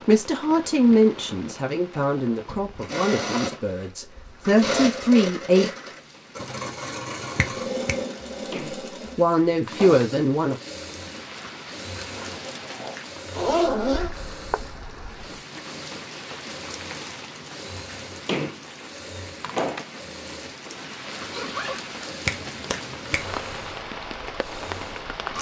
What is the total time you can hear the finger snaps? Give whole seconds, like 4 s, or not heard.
2 s.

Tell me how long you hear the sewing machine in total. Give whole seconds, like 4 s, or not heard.
23 s.